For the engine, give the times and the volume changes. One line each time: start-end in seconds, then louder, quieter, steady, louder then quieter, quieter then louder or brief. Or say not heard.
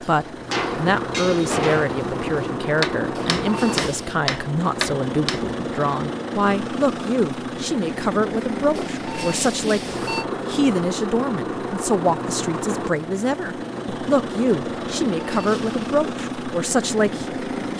0.0-17.7 steady.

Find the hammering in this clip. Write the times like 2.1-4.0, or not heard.
0.0-5.5.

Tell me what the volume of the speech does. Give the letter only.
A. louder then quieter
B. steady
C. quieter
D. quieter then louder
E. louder
B.